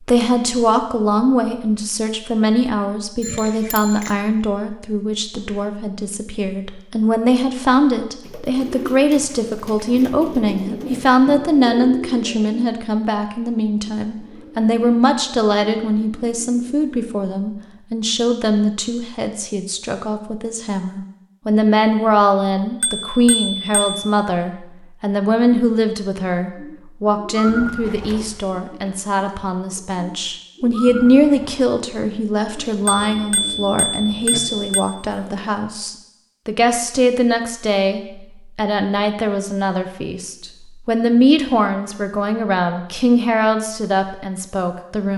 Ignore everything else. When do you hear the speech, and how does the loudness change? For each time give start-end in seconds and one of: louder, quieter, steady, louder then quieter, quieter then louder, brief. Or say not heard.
0.1-45.1 steady.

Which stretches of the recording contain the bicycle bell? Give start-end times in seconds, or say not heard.
3.2-4.2, 22.8-24.1, 32.9-34.9.